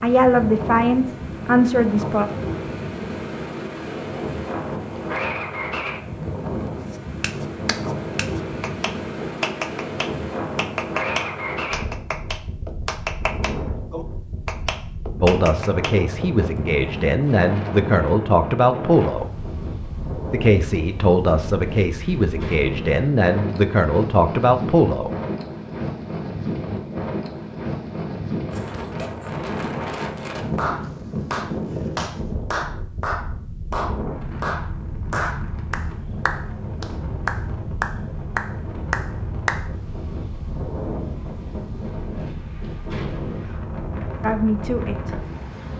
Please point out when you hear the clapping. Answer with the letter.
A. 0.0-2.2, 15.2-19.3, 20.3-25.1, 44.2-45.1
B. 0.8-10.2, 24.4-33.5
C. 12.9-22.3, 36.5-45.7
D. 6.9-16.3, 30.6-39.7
D.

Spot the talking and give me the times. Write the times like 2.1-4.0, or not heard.
0.0-2.2, 15.2-19.3, 20.3-25.1, 44.2-45.1.